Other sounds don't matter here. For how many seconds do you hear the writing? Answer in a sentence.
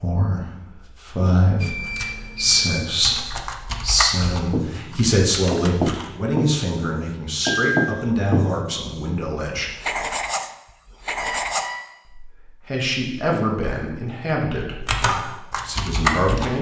The writing can be heard for 7 seconds in total.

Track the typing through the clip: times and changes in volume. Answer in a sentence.
The typing can be heard from 1.8 to 6.2 s, getting louder then quieter; and briefly from 14.8 to 16.5 s.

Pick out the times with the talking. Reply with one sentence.
You can hear the talking from 0.0 to 9.7 s and from 12.2 to 16.5 s.